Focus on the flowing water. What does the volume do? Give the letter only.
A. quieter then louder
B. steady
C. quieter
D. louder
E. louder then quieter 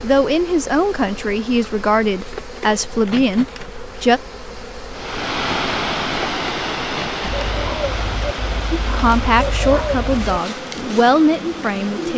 C.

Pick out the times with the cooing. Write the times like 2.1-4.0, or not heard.
7.2-12.1.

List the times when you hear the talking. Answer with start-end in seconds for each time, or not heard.
0.0-4.2, 8.8-12.1.